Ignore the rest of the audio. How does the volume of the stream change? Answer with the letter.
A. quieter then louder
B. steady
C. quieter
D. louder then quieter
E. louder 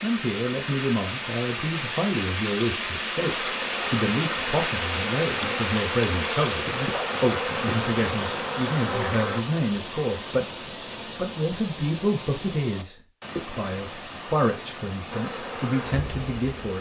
C.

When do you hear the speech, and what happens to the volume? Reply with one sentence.
You can hear the speech from 0.0 to 16.7 s, at a steady volume.